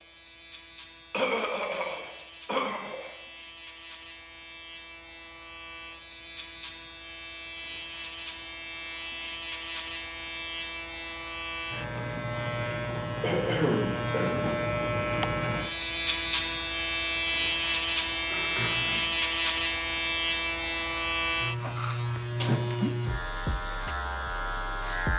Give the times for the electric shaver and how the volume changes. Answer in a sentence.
You can hear the electric shaver from 0.0 to 25.1 s, getting louder.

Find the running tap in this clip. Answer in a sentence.
The running tap can't be heard in this clip.